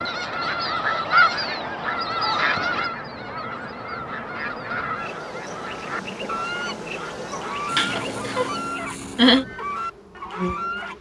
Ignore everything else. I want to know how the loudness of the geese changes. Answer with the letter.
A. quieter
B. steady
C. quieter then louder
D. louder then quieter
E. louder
A.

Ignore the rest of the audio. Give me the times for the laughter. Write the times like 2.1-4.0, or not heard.
7.7-9.4.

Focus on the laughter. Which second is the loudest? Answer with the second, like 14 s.
9 s.